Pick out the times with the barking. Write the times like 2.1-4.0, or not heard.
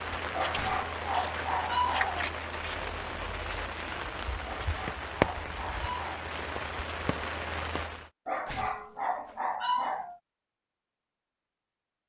0.3-2.3, 4.5-6.3, 8.2-10.2.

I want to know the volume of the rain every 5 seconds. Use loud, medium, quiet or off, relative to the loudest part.
loud, loud, off.